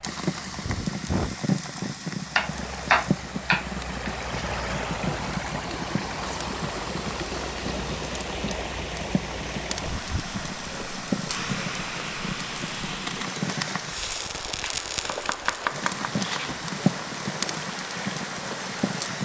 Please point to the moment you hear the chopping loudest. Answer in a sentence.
The loudest moment of the chopping is at 3 seconds.